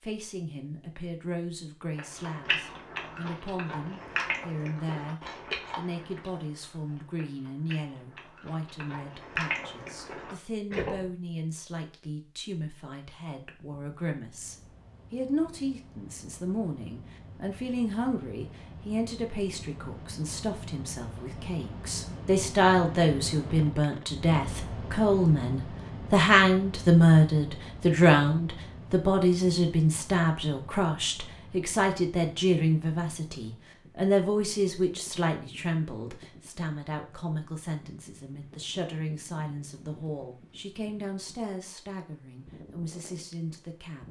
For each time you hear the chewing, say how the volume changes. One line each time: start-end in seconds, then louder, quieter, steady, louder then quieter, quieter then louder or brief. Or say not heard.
1.9-11.1 quieter then louder.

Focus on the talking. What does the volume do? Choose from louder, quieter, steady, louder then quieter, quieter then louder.
louder then quieter.